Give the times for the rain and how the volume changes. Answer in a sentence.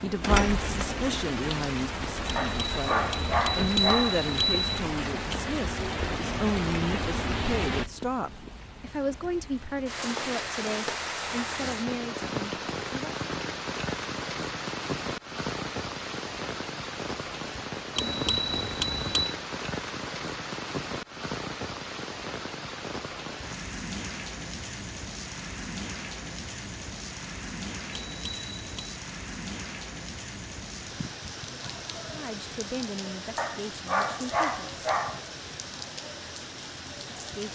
You can hear the rain from 0.0 to 37.5 s, getting quieter.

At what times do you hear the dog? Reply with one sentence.
The dog can be heard from 2.4 to 4.2 s and from 33.4 to 35.2 s.